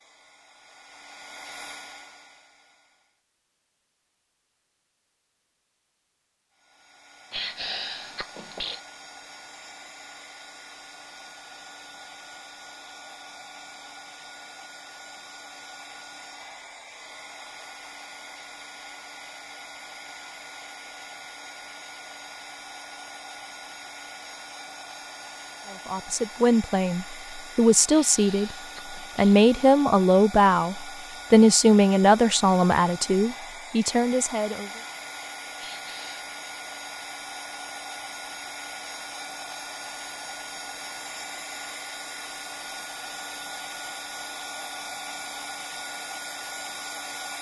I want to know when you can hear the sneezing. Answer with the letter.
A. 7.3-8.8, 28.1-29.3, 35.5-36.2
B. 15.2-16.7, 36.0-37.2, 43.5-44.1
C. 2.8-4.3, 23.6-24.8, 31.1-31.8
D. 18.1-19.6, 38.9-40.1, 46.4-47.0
A.